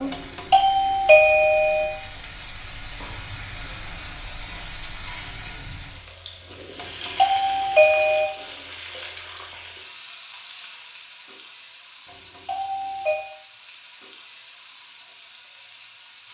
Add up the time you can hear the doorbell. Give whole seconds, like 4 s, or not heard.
5 s.